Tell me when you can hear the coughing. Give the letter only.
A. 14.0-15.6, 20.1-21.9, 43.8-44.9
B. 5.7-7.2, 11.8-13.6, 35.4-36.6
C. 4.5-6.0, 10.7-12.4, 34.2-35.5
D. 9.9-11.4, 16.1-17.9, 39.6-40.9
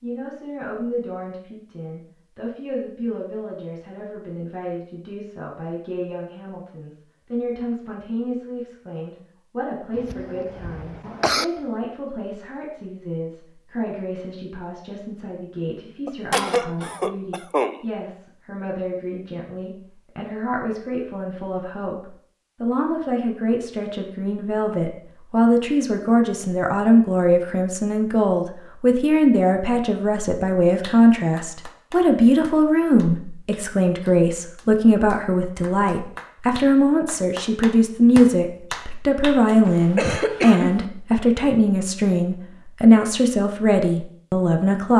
D.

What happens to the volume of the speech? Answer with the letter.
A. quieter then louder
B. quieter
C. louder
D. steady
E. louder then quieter
C.